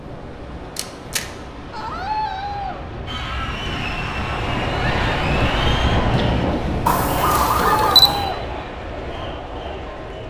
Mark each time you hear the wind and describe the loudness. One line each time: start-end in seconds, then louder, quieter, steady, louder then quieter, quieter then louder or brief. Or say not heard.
0.0-10.2 louder then quieter.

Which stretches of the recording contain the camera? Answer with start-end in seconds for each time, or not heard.
0.8-1.2, 6.8-8.2.